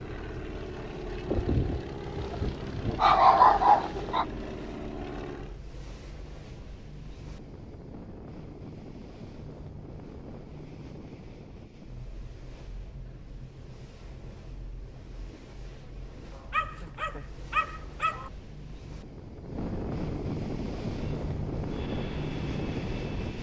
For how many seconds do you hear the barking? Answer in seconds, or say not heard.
5 s.